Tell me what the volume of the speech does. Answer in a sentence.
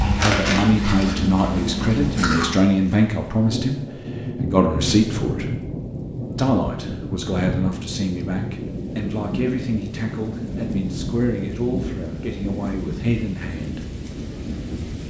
The loudness of the speech goes down.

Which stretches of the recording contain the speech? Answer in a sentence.
You can hear the speech from 0.1 to 5.5 s and from 6.3 to 13.9 s.